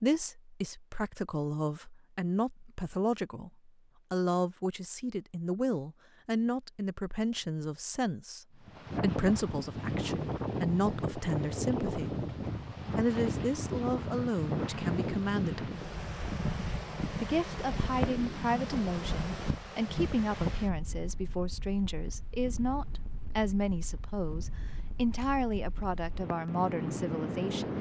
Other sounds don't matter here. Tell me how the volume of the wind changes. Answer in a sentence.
The loudness of the wind goes down.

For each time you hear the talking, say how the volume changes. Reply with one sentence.
The talking can be heard from 0.0 to 12.2 s, at a steady volume; briefly from 12.9 to 15.7 s; and from 17.2 to 27.7 s, at a steady volume.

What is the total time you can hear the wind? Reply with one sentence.
You can hear the wind for 19 seconds altogether.